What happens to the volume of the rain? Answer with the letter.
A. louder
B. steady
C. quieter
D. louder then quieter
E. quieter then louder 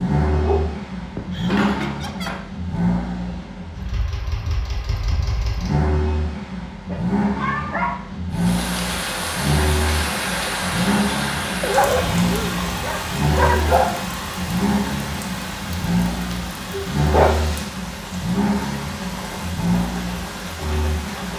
C.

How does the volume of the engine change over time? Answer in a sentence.
The volume of the engine stays about the same.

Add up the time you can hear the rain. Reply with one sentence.
You can hear the rain for 13 seconds altogether.